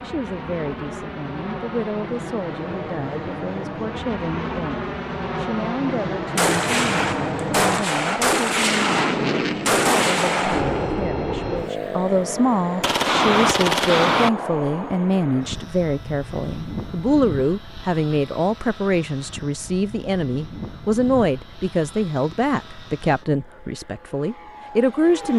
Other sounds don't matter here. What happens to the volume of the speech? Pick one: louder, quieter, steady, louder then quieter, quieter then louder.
louder.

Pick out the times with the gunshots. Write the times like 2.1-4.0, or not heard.
6.3-10.9, 12.8-14.3.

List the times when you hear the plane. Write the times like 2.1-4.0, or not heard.
0.0-25.3.